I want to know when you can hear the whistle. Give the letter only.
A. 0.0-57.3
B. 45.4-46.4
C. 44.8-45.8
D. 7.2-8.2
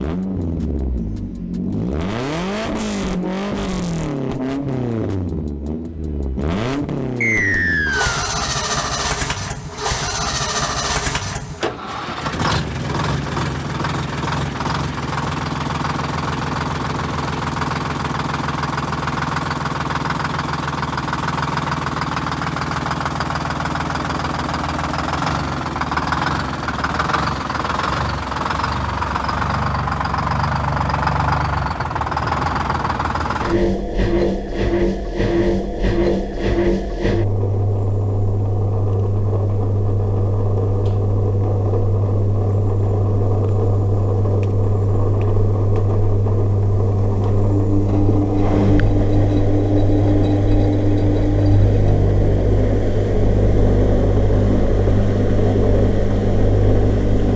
D.